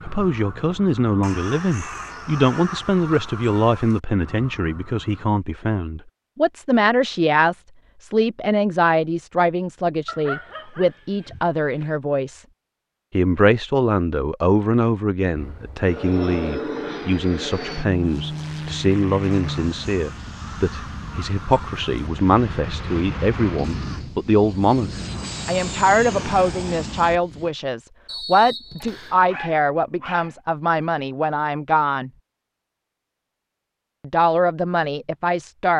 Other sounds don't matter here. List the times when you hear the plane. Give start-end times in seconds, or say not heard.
15.3-27.5.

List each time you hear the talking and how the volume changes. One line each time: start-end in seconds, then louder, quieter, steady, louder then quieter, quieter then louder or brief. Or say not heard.
0.0-12.4 steady
13.1-32.1 steady
34.0-35.7 brief.